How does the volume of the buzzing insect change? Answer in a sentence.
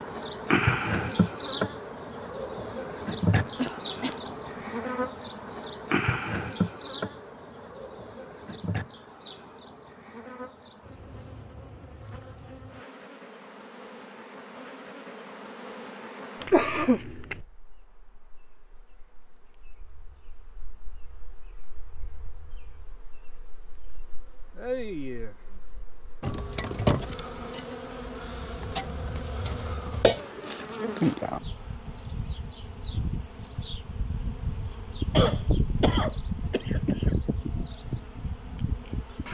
The volume of the buzzing insect goes down, then up.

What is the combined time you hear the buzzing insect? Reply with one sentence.
You can hear the buzzing insect for 39 seconds altogether.